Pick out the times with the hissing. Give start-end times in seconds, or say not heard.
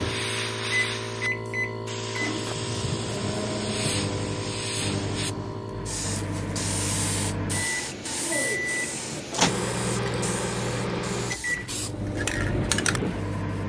0.0-13.6.